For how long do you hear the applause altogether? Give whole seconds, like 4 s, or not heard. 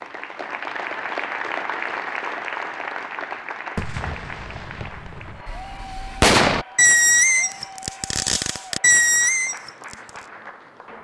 11 s.